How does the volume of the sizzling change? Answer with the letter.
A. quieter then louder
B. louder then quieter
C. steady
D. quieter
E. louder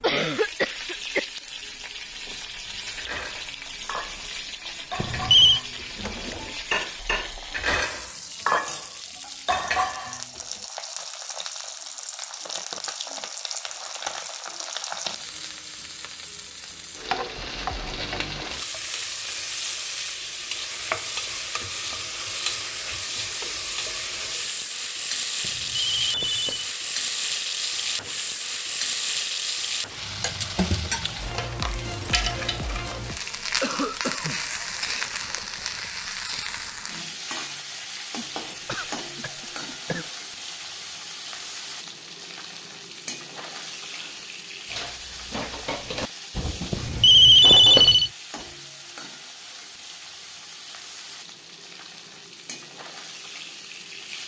B.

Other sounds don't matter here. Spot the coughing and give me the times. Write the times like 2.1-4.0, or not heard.
0.0-1.2, 33.6-34.4, 38.1-40.1.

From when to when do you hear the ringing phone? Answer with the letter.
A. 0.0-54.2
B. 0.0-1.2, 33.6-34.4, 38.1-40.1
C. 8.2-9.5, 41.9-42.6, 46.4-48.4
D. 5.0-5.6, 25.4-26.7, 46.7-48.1
D.